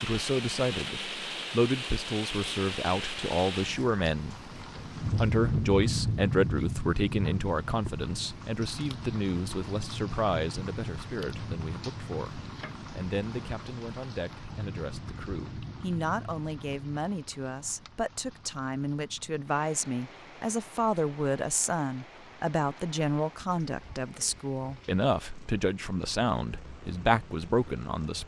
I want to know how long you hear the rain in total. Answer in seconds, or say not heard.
28 s.